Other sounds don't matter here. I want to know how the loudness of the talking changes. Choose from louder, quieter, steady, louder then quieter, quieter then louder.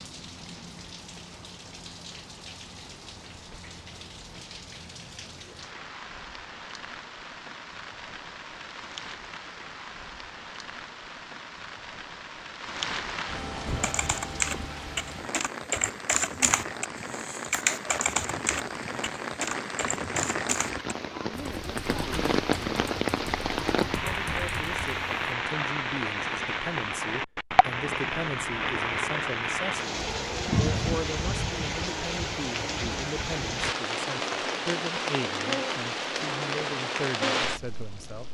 steady.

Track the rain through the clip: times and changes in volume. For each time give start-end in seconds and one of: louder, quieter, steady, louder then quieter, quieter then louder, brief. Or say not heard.
0.0-38.2 louder.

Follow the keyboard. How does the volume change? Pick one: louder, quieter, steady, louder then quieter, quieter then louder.
quieter.